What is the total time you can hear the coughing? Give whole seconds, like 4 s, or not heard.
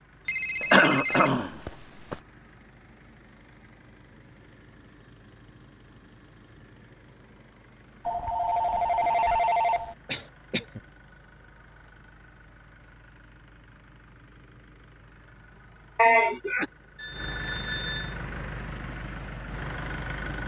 3 s.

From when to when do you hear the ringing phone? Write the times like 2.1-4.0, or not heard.
0.2-1.3, 8.1-9.9, 16.9-18.1.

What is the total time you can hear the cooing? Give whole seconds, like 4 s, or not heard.
not heard.